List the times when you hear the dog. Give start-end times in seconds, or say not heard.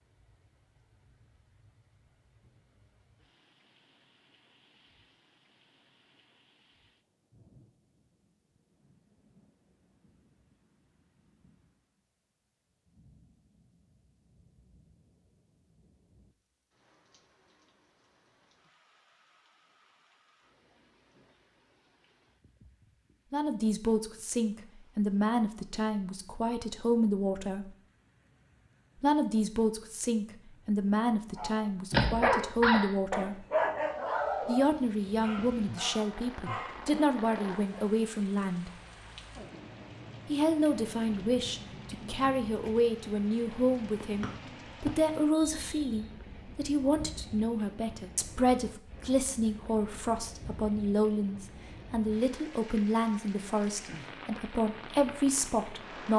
31.4-38.0.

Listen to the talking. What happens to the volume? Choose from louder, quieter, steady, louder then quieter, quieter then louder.
steady.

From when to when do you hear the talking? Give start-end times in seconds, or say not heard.
23.3-27.7, 29.0-33.5, 34.5-38.8, 40.2-56.1.